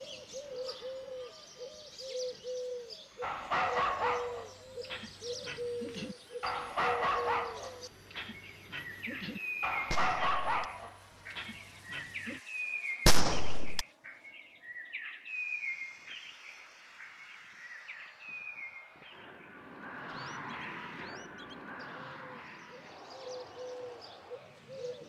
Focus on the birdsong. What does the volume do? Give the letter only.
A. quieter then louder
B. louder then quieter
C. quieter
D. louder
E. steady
C.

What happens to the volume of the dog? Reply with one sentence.
The loudness of the dog stays about the same.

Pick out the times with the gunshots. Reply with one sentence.
You can hear the gunshots from 9.9 to 10.7 s and from 13.1 to 13.8 s.